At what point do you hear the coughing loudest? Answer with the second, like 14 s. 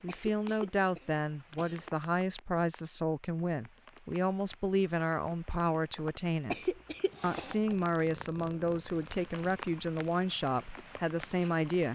7 s.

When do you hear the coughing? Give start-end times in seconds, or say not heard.
0.1-1.9, 6.5-7.5.